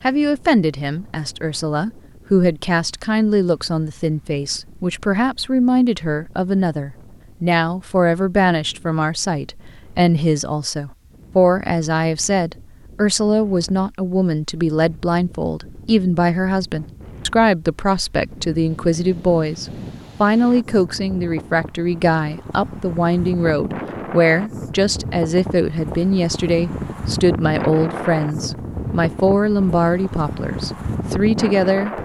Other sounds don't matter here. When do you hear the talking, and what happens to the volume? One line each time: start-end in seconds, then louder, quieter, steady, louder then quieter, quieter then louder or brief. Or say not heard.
0.0-31.9 steady.